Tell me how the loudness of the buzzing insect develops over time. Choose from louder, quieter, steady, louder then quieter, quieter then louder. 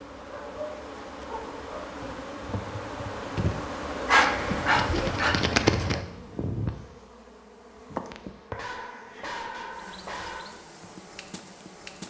louder then quieter.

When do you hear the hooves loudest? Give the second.
6 s.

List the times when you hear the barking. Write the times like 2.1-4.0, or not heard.
0.1-1.9, 4.0-5.8, 8.5-10.6.